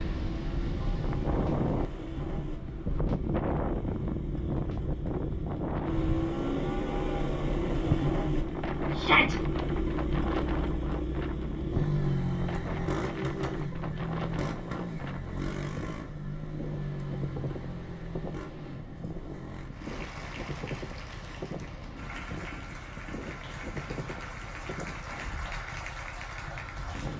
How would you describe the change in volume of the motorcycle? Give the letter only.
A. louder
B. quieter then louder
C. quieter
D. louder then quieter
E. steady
D.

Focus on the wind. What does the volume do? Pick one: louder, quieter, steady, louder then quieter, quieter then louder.
quieter.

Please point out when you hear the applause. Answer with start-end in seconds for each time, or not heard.
19.7-27.1.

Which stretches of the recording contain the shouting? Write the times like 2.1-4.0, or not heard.
8.9-9.3.